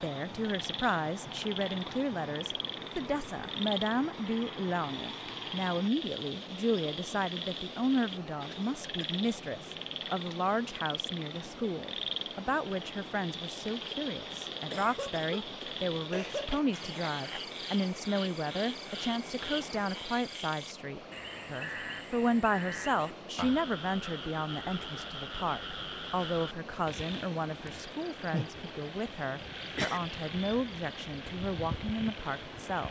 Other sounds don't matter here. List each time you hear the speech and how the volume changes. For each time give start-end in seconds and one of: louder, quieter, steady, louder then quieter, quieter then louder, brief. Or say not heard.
0.0-32.8 steady.